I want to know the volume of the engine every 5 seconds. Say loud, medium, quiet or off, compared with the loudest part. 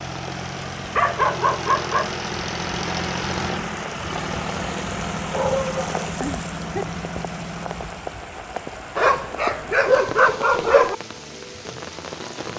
loud, loud, off.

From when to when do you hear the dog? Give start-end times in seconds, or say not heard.
0.9-2.1, 5.3-6.8, 8.9-10.9.